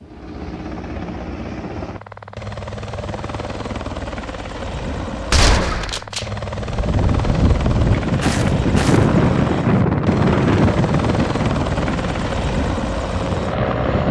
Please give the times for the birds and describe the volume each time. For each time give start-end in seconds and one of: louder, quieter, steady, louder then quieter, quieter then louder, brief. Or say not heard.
not heard.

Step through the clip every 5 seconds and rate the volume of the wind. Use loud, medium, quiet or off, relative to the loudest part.
off, loud, loud.